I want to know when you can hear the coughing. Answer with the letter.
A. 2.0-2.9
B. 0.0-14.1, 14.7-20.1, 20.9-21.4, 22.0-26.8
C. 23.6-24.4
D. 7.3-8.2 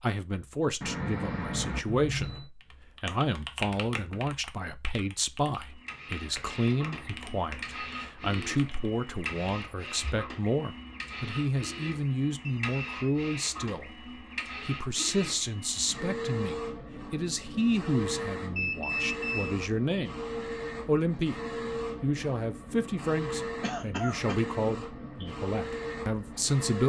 C.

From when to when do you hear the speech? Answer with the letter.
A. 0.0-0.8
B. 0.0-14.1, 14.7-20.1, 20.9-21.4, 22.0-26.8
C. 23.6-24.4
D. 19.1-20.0
B.